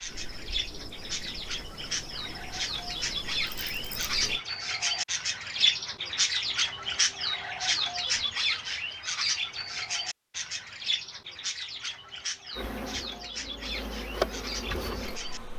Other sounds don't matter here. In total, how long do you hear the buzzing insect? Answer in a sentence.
You can hear the buzzing insect for 7 seconds altogether.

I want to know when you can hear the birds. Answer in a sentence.
The birds can be heard from 0.0 to 15.4 s.